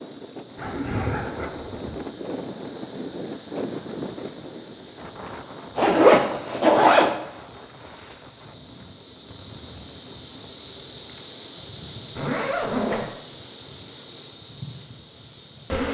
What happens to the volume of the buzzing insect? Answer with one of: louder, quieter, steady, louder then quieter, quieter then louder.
louder.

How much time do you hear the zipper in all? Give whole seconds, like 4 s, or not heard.
4 s.